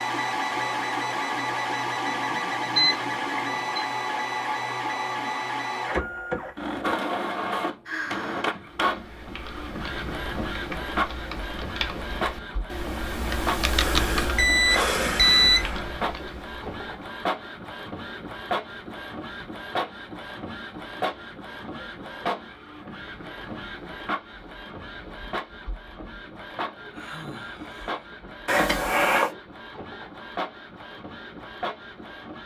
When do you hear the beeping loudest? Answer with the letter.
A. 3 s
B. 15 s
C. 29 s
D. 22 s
B.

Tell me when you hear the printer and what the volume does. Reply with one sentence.
You can hear the printer from 0.0 to 32.4 s, getting quieter.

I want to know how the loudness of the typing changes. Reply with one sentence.
The loudness of the typing goes up, then down.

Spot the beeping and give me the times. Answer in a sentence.
The beeping can be heard from 2.1 to 3.9 s, from 14.3 to 15.8 s and from 28.4 to 29.3 s.